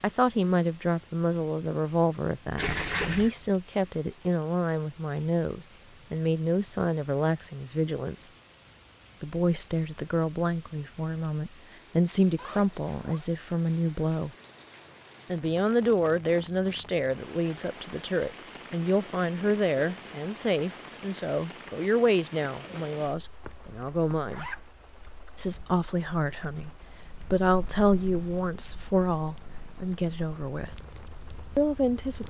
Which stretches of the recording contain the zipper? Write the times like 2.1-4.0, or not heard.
2.5-3.3, 12.3-13.2, 23.4-24.6.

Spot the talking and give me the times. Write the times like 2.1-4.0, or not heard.
0.0-8.3, 9.2-14.3, 15.3-24.4, 25.4-30.8, 31.6-32.2.